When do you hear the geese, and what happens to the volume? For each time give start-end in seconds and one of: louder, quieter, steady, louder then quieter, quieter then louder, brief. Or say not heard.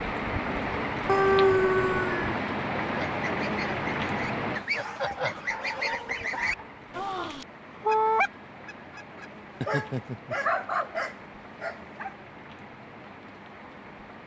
2.8-9.9 louder then quieter.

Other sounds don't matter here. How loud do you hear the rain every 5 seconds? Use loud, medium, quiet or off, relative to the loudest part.
loud, quiet, quiet.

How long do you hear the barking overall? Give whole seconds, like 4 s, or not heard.
6 s.